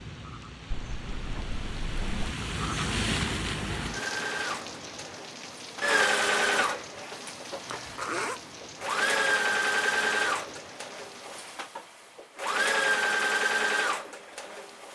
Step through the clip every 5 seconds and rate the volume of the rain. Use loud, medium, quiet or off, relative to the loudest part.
loud, medium, quiet.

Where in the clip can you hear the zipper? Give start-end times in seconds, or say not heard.
0.7-2.4, 7.7-8.4.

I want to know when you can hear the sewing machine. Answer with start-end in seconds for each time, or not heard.
3.9-14.9.